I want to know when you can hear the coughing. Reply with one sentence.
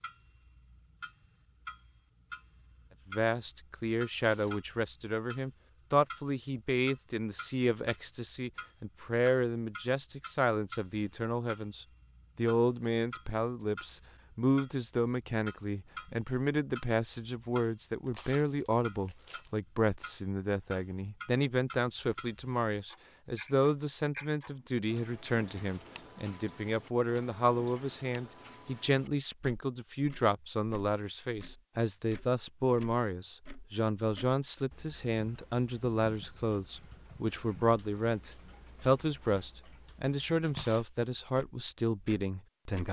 The coughing can't be heard in this clip.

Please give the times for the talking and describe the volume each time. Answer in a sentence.
The talking can be heard from 3.1 to 42.8 s, at a steady volume.